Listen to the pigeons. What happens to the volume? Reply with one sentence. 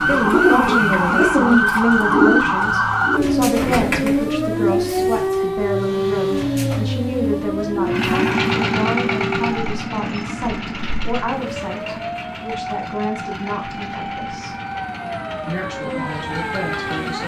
The loudness of the pigeons goes down.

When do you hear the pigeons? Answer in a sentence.
You can hear the pigeons from 0.0 to 5.2 s.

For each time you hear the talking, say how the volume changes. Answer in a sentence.
The talking can be heard from 0.0 to 14.6 s, getting quieter; and briefly from 15.4 to 17.2 s.